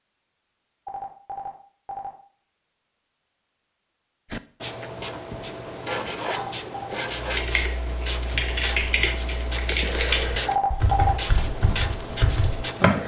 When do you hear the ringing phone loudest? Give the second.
11 s.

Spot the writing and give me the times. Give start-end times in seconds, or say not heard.
4.2-13.0.